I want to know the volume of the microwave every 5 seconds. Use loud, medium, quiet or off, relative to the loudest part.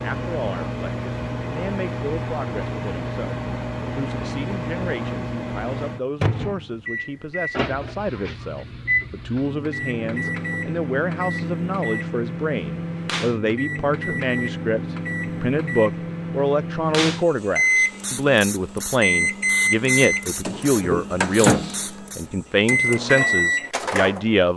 medium, medium, medium, loud, loud.